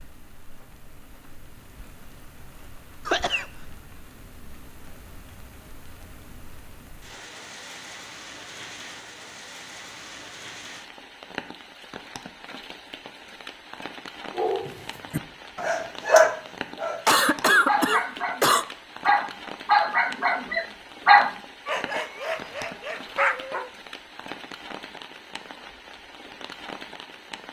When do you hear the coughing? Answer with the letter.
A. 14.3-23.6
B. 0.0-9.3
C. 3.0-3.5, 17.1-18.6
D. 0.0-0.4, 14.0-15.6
C.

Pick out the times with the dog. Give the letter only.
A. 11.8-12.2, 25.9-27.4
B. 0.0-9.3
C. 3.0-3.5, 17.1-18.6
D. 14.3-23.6
D.